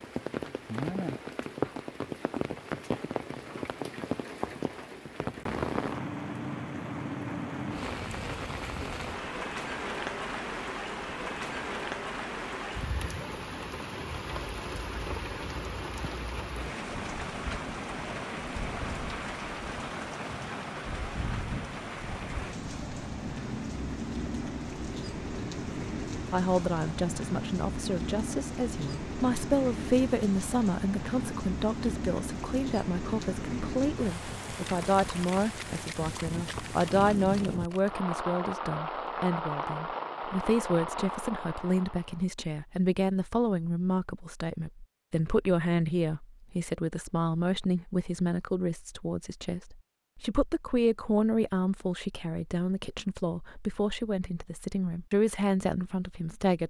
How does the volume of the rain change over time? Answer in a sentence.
The loudness of the rain stays about the same.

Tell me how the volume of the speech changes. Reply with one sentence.
The loudness of the speech stays about the same.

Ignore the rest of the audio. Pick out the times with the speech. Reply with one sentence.
The speech can be heard from 26.3 to 56.6 s.